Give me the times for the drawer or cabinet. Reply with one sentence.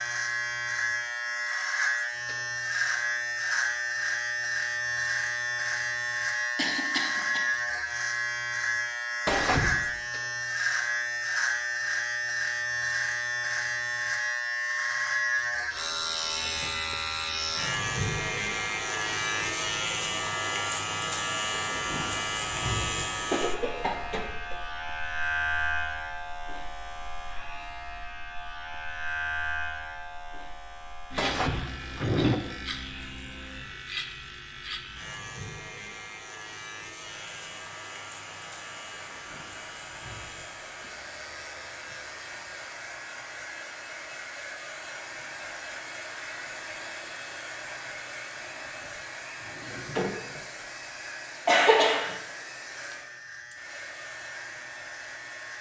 The drawer or cabinet can be heard from 9.2 to 9.8 s, from 31.1 to 32.4 s and from 48.5 to 50.7 s.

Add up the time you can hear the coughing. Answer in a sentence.
You can hear the coughing for 3 seconds altogether.